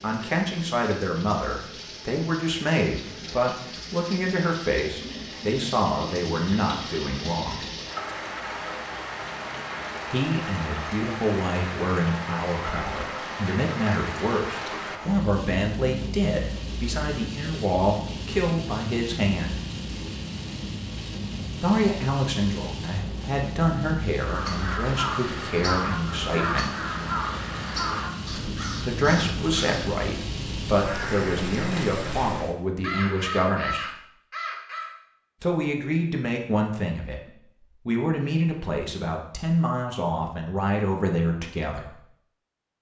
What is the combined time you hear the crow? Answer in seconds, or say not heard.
11 s.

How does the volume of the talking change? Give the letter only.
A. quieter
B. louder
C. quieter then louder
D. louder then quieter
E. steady
E.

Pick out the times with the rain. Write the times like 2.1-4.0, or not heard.
0.0-32.5.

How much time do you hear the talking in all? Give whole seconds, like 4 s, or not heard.
34 s.